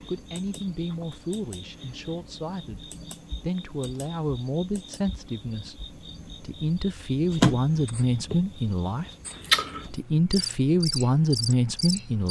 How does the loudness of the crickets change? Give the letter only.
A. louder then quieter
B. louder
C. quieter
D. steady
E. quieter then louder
B.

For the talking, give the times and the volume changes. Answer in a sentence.
The talking can be heard from 0.1 to 9.1 s, getting louder; and briefly from 9.9 to 12.2 s.